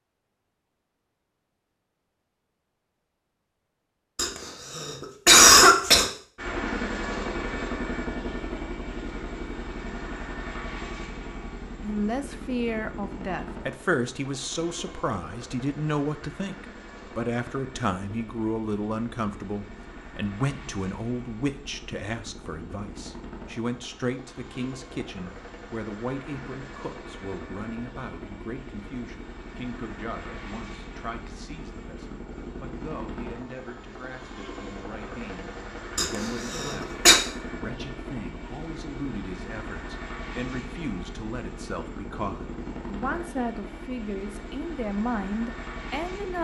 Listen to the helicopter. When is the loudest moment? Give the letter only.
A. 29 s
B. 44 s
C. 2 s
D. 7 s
D.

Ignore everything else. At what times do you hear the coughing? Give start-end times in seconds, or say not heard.
4.2-6.0, 36.0-37.1.